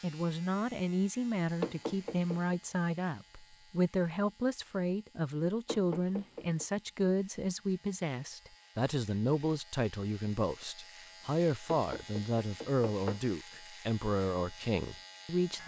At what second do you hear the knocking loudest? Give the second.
2 s.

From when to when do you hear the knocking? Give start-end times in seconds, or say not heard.
1.6-2.5, 5.7-6.7, 11.7-13.2.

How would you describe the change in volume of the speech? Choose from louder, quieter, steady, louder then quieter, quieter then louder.
steady.